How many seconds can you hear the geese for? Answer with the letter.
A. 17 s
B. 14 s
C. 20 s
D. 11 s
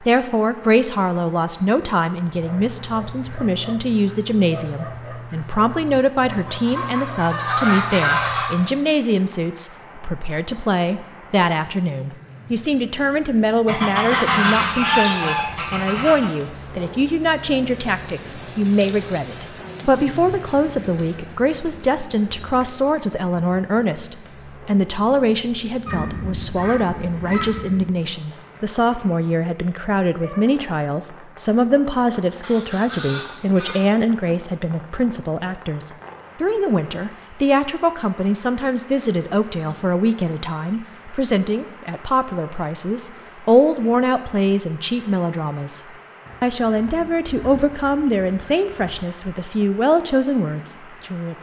D.